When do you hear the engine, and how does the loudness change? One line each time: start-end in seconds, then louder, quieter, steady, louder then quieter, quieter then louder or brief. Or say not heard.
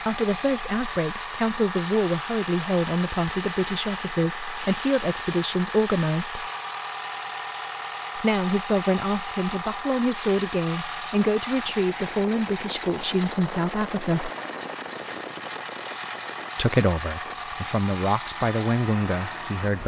0.0-19.8 steady.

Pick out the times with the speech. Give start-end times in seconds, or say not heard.
0.1-6.5, 8.2-14.3, 16.6-19.8.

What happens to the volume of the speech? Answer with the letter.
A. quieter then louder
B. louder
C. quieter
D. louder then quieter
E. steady
E.